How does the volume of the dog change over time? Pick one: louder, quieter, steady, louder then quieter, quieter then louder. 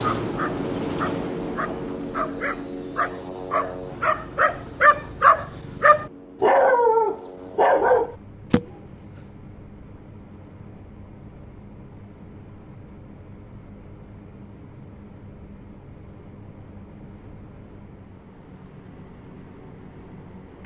louder.